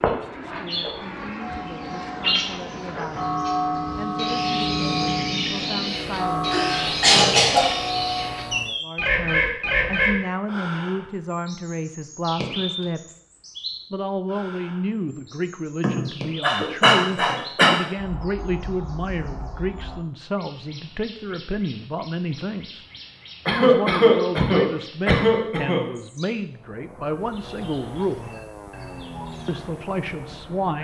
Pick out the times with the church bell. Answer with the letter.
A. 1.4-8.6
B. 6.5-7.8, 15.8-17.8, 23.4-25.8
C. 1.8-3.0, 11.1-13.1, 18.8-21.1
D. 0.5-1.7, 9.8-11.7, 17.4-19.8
A.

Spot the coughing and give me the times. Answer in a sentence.
You can hear the coughing from 6.5 to 7.8 s, from 15.8 to 17.8 s and from 23.4 to 25.8 s.